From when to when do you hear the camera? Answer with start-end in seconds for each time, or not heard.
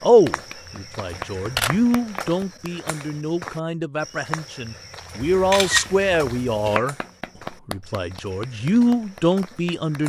1.1-1.9, 5.2-6.8.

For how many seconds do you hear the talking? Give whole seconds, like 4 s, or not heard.
9 s.